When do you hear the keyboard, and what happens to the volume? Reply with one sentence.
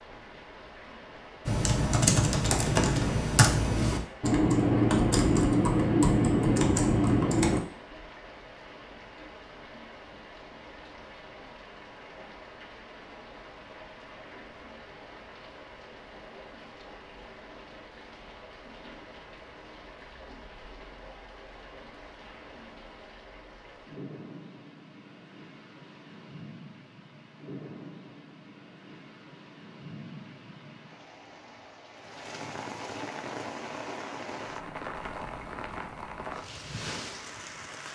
You can hear the keyboard from 1.4 to 7.6 s, at a steady volume.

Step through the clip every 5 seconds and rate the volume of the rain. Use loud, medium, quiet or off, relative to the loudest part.
medium, medium, medium, medium, medium, medium, loud, loud.